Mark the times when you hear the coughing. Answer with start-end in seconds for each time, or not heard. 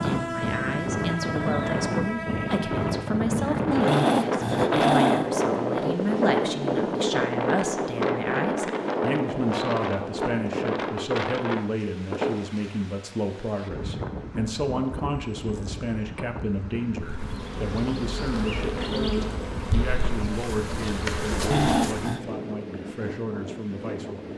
not heard.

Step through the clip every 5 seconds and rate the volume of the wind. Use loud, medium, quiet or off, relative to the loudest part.
loud, loud, medium, quiet, medium.